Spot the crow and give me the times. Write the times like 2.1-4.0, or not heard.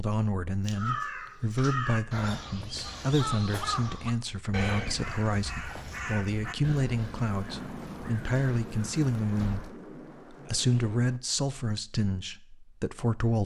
0.7-9.8.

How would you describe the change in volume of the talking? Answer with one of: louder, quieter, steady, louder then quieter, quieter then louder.
steady.